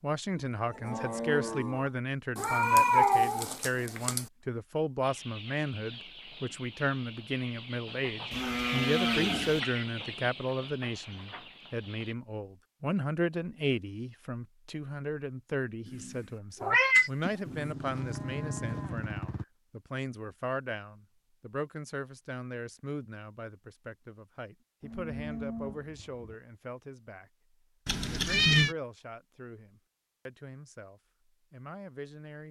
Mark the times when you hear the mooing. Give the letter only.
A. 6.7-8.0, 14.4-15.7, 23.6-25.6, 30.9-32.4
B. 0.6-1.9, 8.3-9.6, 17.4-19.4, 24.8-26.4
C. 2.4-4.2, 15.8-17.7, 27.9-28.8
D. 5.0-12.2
B.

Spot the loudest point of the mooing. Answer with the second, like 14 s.
9 s.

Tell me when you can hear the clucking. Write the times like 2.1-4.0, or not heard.
5.0-12.2.